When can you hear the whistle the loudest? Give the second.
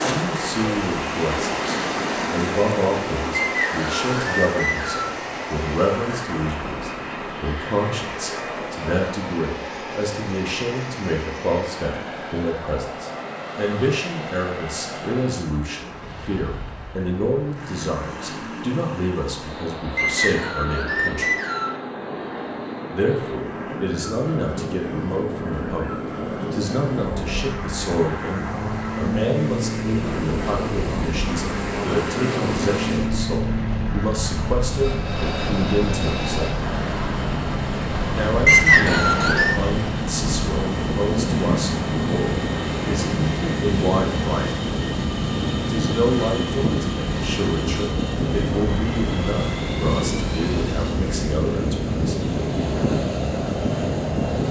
39 s.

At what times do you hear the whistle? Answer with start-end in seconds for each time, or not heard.
3.5-5.2, 19.9-21.8, 38.5-39.6.